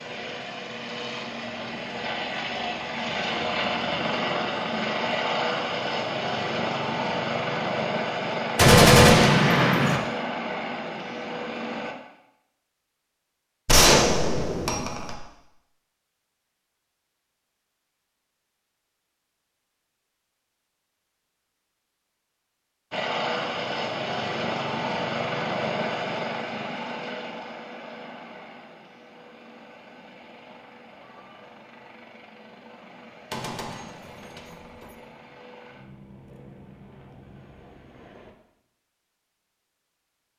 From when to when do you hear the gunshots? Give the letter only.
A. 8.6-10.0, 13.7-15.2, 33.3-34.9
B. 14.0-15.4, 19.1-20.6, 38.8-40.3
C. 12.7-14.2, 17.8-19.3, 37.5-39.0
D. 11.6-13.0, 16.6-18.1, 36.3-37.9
A.